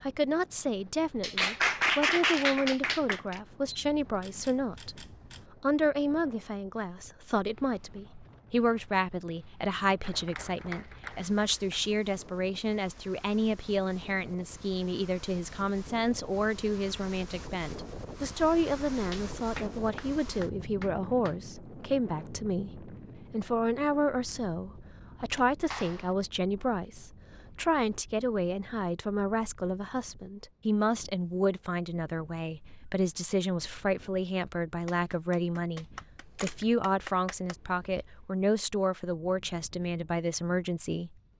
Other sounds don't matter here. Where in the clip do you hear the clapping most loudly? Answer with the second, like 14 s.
2 s.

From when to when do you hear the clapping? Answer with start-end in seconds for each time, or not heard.
1.2-3.4, 10.0-11.8, 19.1-21.4, 25.7-26.1, 34.9-37.5.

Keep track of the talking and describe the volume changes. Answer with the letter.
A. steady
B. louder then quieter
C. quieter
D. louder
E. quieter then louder
A.